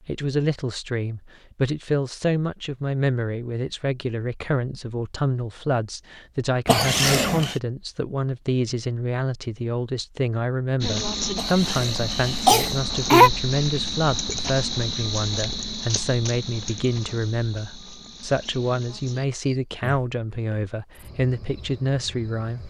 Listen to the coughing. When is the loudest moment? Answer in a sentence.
The volume of the coughing peaks at 13 seconds.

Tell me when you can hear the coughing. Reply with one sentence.
You can hear the coughing from 6.7 to 7.5 s and from 11.3 to 13.3 s.